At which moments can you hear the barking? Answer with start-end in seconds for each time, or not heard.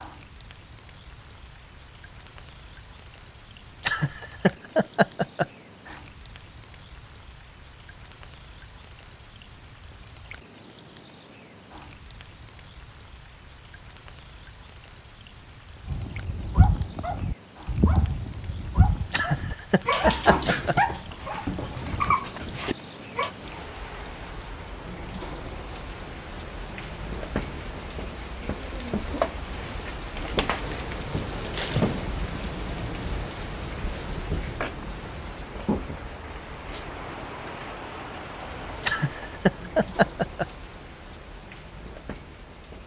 15.8-23.4.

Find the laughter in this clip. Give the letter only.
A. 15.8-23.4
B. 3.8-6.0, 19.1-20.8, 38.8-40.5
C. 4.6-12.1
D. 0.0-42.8
B.